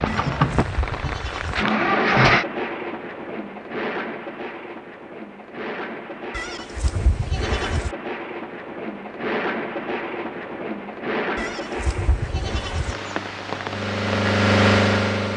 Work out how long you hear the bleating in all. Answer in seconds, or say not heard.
5 s.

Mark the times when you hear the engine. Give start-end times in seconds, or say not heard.
0.0-2.5, 12.4-15.3.